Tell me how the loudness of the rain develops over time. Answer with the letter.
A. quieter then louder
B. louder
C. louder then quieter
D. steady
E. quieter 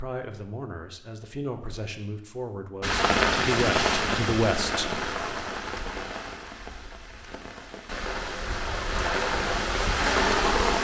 A.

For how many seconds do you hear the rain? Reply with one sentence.
You can hear the rain for 8 seconds altogether.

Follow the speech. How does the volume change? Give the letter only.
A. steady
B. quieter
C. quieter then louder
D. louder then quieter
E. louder
E.